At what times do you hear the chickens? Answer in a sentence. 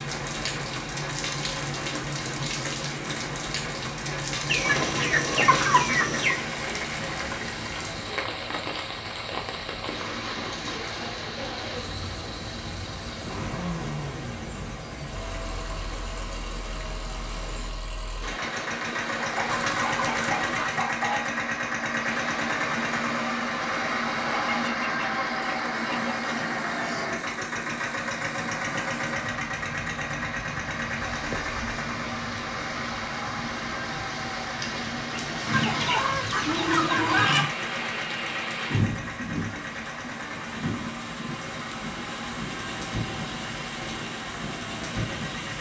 You can hear the chickens from 4.5 to 6.4 s, from 19.2 to 21.2 s, from 24.2 to 27.1 s and from 35.5 to 37.5 s.